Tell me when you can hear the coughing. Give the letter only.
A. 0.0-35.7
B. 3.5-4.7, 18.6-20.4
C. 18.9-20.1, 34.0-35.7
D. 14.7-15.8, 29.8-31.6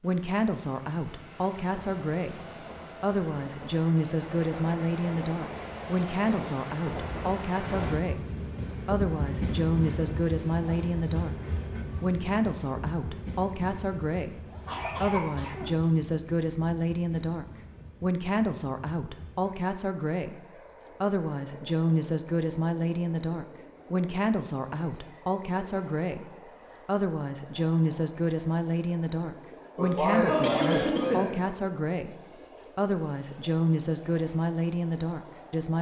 D.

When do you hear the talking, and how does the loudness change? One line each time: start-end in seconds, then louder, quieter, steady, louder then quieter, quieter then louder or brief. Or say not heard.
0.0-35.7 steady.